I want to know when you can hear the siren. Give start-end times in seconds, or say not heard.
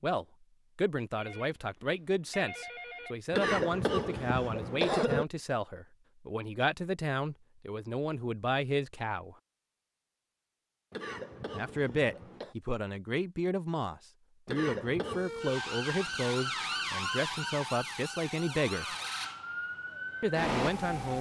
15.1-21.1.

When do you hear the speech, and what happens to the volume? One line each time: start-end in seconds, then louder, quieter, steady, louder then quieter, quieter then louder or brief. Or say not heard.
0.0-9.3 steady
11.5-18.9 steady
20.2-21.1 brief.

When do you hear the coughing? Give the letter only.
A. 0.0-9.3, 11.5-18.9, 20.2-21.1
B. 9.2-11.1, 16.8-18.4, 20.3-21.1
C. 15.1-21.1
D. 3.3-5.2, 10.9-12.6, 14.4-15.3
D.